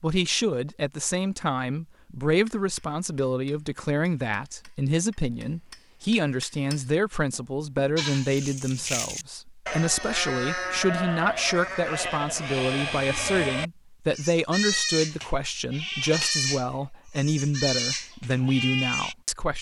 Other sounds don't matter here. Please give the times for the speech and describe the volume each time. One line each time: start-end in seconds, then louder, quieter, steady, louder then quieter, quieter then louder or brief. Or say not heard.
0.0-19.5 steady.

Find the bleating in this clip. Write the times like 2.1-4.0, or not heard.
8.0-19.1.